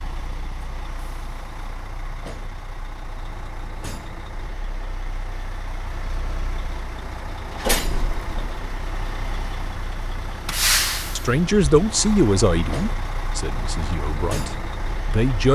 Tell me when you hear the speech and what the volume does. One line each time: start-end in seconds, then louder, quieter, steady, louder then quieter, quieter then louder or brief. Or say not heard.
11.2-15.4 quieter.